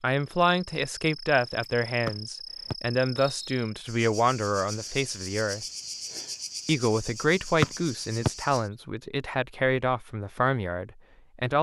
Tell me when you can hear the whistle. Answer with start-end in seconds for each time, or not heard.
2.0-3.6, 7.6-8.3.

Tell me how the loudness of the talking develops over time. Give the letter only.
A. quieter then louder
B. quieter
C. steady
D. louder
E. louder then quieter
C.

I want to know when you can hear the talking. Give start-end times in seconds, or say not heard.
0.0-5.7, 6.7-11.5.